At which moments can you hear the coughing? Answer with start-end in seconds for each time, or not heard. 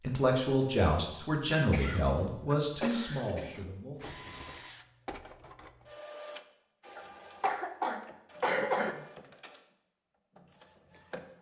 1.7-3.6, 7.0-8.9.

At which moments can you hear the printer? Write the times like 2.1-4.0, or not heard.
4.0-11.3.